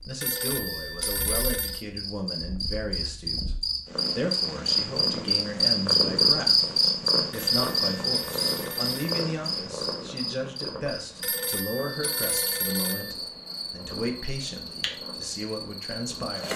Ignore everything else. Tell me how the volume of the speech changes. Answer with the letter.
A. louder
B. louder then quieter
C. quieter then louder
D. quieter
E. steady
E.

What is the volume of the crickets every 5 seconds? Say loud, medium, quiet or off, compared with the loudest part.
medium, loud, quiet, quiet.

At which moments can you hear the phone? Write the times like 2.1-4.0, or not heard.
0.2-1.9, 7.3-9.2, 11.2-13.2.